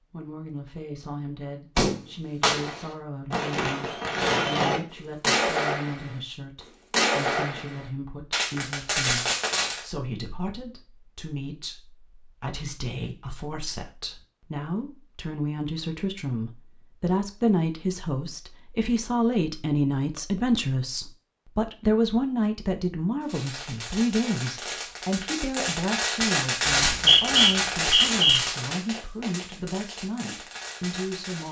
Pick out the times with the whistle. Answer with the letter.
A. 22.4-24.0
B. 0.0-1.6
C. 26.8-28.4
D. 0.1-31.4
C.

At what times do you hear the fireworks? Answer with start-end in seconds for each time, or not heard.
1.8-6.2, 6.9-9.8, 23.2-31.4.